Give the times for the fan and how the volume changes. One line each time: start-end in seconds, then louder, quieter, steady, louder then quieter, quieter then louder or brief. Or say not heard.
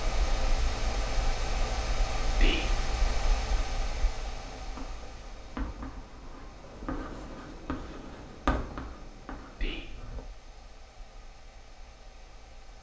0.0-12.7 quieter.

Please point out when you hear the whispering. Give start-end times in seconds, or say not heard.
2.4-2.9, 9.6-10.1.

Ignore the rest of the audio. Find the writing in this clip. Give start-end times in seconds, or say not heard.
4.3-10.2.